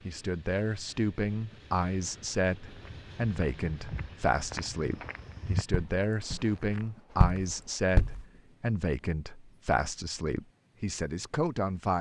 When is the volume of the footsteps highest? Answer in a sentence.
The volume of the footsteps peaks at 7 seconds.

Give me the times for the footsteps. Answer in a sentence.
You can hear the footsteps from 2.8 to 8.2 s.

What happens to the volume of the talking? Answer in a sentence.
The volume of the talking stays about the same.